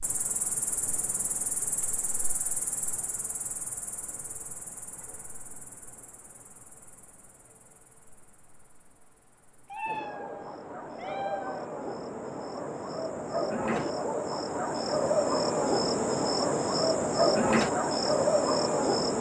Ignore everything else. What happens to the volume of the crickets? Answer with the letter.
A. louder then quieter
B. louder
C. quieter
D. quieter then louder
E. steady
D.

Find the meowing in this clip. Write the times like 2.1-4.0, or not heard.
9.7-11.7.